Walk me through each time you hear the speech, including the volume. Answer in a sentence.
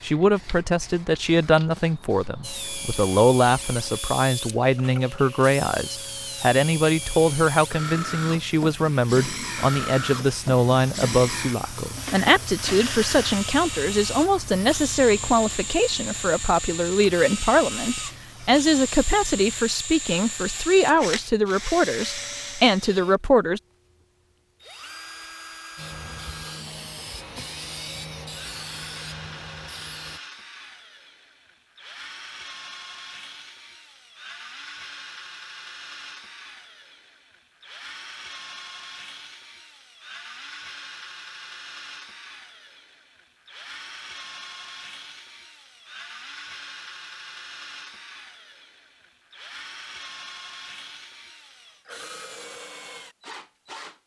The speech can be heard from 0.0 to 23.6 s, at a steady volume.